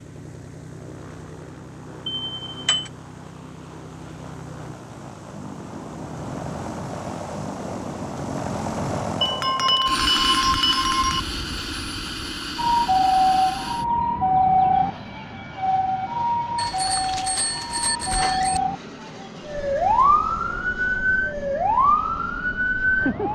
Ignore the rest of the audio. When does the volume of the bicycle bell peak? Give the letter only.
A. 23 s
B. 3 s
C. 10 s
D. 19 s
C.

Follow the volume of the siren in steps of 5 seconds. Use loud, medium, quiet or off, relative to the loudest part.
off, off, loud, medium, loud.